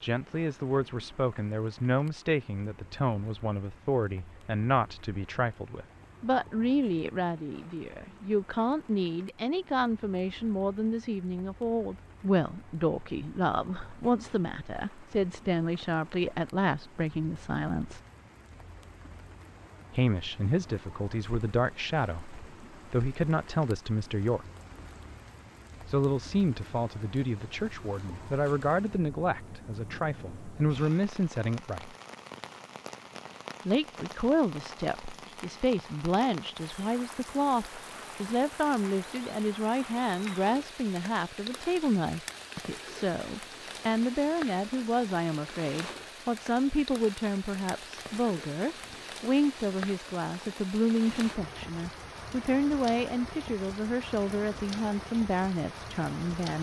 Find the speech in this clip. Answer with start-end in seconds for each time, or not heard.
0.0-18.0, 19.9-24.4, 25.9-31.9, 33.6-56.5.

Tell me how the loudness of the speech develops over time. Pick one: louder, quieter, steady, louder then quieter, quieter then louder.
steady.